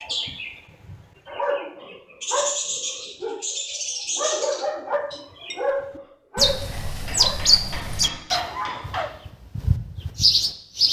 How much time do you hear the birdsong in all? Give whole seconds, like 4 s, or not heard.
11 s.